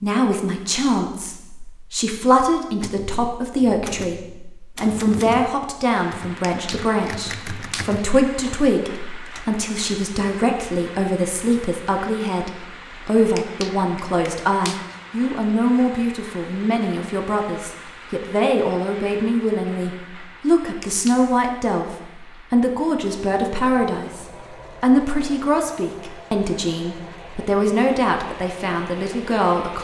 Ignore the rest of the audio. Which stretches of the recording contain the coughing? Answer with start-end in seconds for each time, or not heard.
not heard.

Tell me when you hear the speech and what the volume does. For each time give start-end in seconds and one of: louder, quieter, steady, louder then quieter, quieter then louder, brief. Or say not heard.
0.0-29.7 steady.